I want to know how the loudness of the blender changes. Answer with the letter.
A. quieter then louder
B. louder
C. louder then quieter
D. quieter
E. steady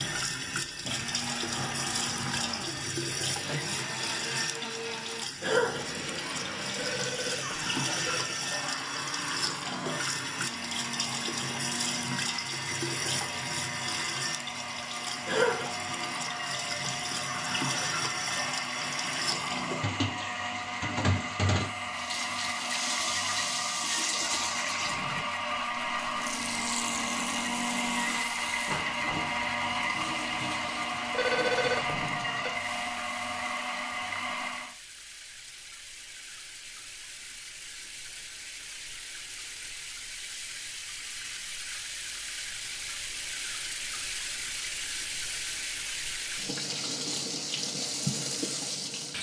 B.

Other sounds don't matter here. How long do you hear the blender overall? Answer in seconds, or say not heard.
35 s.